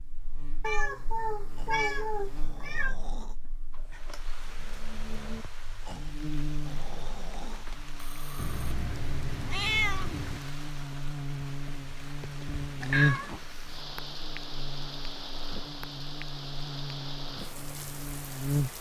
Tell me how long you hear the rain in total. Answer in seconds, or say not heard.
15 s.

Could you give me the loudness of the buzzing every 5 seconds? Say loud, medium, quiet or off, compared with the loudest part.
quiet, medium, loud, loud.